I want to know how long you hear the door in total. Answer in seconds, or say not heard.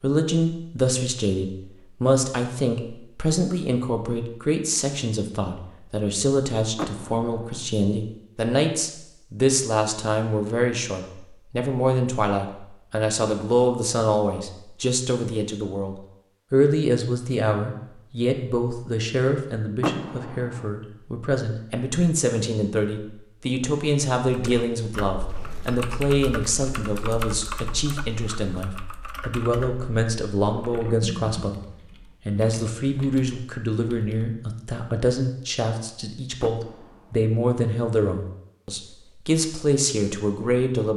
3 s.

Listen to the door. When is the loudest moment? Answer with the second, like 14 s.
20 s.